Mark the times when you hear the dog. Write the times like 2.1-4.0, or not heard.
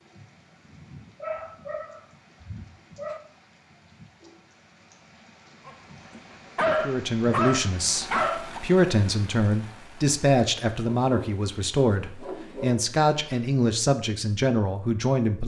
1.2-3.2, 5.7-8.6, 11.0-13.6.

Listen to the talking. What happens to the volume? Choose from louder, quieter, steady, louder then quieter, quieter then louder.
steady.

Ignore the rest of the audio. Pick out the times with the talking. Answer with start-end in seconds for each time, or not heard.
6.8-15.4.